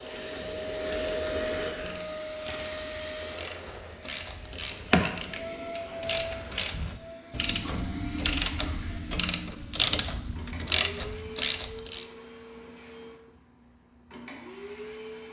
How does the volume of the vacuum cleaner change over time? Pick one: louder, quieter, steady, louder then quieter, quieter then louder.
quieter.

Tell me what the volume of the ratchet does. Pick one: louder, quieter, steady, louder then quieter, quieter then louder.
louder.